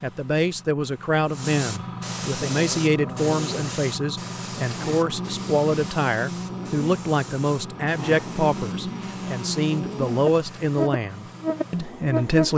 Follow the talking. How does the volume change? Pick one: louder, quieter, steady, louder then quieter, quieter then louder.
steady.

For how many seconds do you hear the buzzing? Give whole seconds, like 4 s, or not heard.
10 s.